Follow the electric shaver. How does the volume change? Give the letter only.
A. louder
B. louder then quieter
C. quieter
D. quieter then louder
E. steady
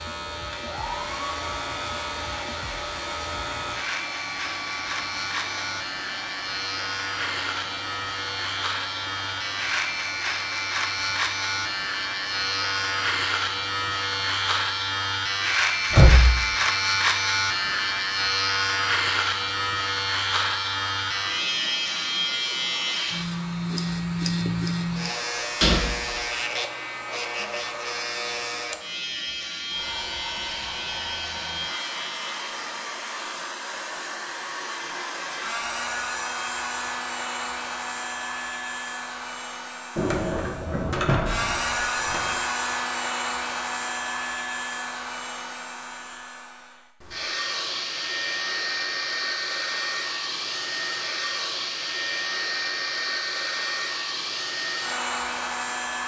B.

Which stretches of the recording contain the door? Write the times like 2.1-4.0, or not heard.
15.9-16.4, 25.6-26.1, 40.0-42.4.